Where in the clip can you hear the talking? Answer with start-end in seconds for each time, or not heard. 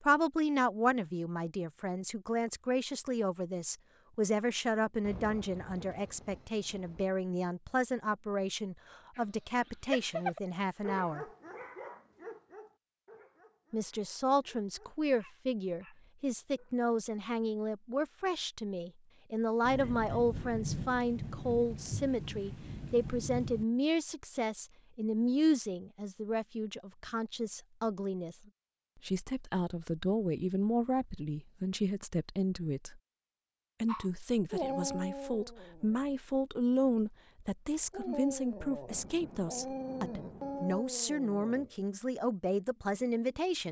0.0-11.2, 13.7-28.4, 29.1-33.0, 33.8-43.6.